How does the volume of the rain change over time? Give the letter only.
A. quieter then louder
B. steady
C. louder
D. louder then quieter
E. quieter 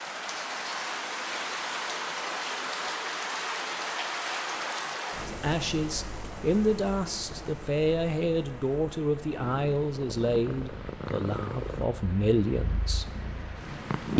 E.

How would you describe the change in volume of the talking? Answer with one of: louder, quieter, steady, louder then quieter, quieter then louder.
steady.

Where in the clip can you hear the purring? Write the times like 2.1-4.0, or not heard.
9.2-14.1.